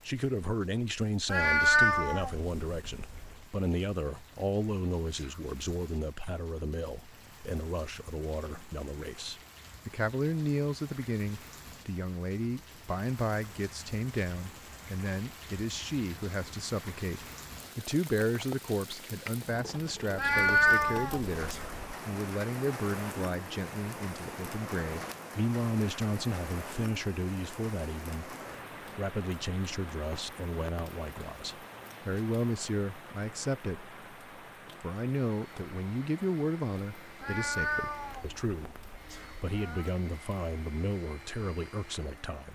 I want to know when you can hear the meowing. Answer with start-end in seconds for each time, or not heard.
1.2-3.4, 20.1-21.8, 37.2-39.9.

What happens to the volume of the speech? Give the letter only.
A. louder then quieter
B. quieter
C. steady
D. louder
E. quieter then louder
C.